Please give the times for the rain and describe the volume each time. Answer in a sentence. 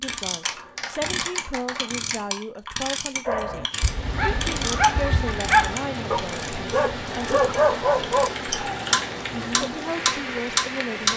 The rain can be heard from 3.6 to 11.1 s, at a steady volume.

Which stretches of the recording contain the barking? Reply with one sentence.
You can hear the barking from 3.2 to 8.3 s.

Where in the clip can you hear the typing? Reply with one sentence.
You can hear the typing from 0.4 to 2.2 s and from 8.2 to 9.7 s.